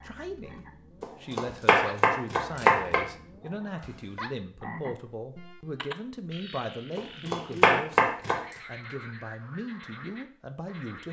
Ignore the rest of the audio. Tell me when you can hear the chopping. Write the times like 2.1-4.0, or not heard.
1.0-3.0, 7.0-8.4.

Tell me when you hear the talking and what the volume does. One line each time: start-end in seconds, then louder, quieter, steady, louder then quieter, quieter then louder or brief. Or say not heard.
0.0-11.0 steady.